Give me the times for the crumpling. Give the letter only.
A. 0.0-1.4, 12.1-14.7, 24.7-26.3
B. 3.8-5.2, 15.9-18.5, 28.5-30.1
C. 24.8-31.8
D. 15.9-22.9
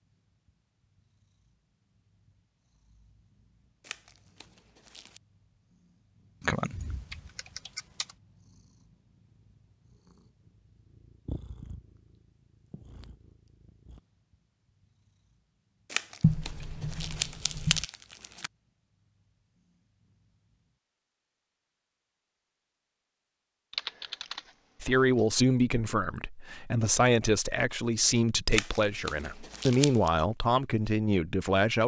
B.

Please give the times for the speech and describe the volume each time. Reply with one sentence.
You can hear the speech from 24.8 to 31.8 s, at a steady volume.